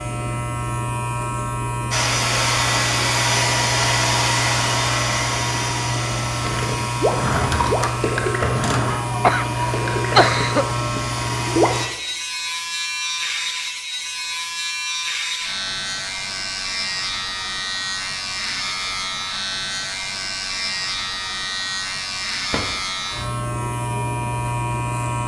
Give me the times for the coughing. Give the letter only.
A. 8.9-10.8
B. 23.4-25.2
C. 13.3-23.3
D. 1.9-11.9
A.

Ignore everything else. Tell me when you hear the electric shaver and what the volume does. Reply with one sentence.
The electric shaver can be heard from 0.0 to 25.2 s, at a steady volume.